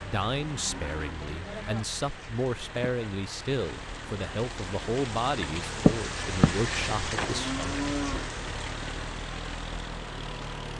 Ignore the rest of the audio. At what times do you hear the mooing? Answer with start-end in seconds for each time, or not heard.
0.3-1.9, 7.2-8.4.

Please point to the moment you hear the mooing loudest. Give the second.
8 s.